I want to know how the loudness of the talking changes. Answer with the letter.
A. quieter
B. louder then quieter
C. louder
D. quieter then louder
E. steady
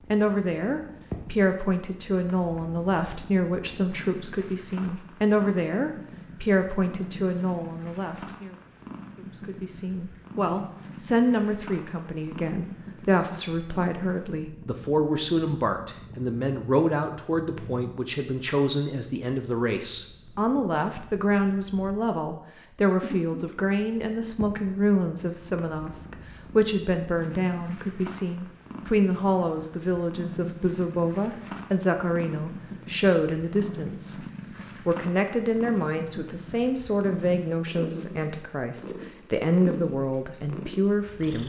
E.